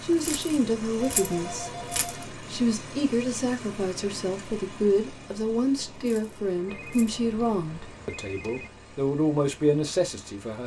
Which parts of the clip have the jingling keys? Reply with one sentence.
The jingling keys can be heard from 0.1 to 2.2 s and from 6.0 to 7.1 s.